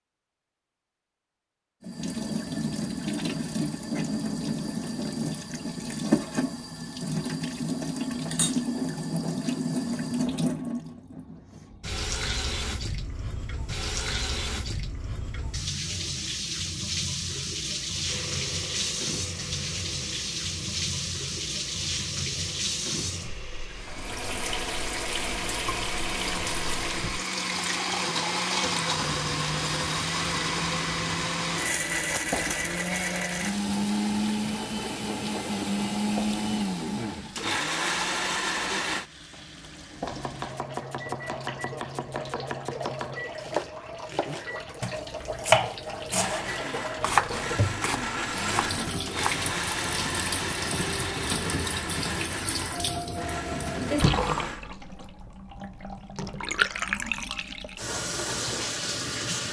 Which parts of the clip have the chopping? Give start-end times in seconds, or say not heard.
40.0-49.4.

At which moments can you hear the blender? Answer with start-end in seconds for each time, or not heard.
18.0-39.0, 46.1-54.6.